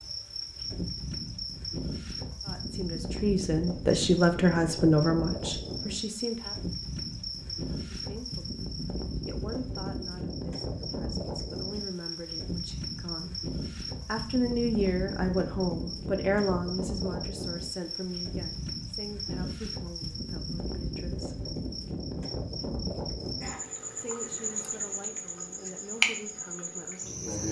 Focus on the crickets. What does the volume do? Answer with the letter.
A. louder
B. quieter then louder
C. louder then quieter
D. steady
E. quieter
D.